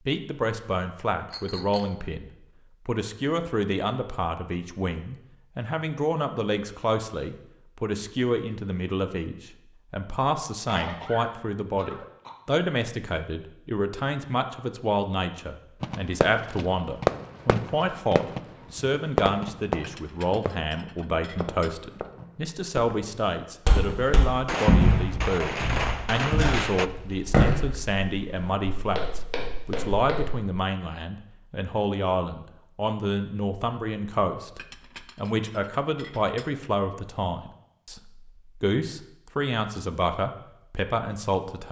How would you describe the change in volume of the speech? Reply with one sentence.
The loudness of the speech stays about the same.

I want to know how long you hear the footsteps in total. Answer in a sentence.
You can hear the footsteps for 7 seconds altogether.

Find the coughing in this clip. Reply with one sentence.
You can hear the coughing from 10.6 to 12.3 s.